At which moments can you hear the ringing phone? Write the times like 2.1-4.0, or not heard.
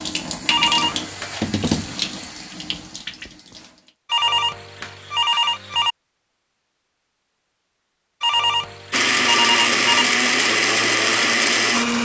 0.5-1.4, 4.0-6.0, 8.2-10.1.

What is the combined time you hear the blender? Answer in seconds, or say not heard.
3 s.